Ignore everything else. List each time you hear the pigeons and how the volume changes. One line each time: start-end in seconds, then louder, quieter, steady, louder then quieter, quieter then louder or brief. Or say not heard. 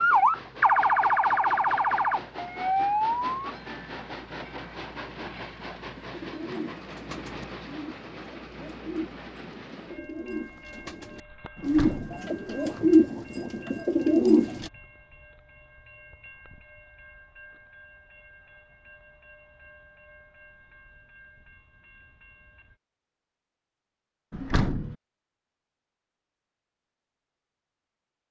6.0-14.7 louder.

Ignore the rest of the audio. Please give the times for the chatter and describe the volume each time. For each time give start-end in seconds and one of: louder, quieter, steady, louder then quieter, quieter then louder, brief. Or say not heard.
not heard.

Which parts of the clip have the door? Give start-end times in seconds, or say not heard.
11.6-12.2, 24.3-24.9.